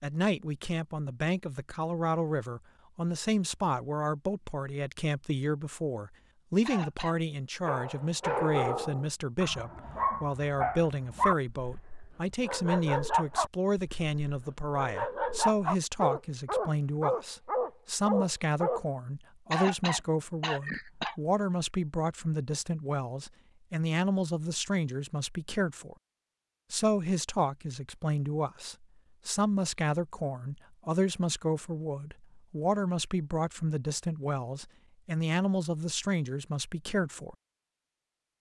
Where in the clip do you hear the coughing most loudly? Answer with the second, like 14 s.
20 s.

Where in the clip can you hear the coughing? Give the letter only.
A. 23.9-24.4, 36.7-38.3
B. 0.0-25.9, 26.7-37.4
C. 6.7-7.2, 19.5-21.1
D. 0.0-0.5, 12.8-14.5
C.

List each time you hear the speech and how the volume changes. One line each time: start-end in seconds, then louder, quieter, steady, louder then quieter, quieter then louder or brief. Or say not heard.
0.0-25.9 steady
26.7-37.4 steady.